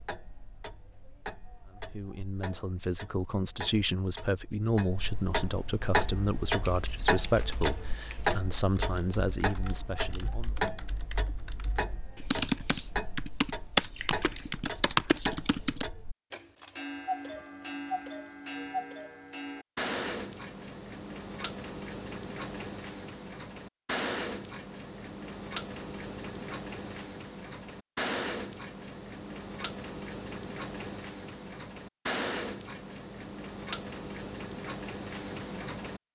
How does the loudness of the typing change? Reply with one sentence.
The loudness of the typing goes up.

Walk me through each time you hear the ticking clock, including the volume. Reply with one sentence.
You can hear the ticking clock from 0.0 to 36.0 s, at a steady volume.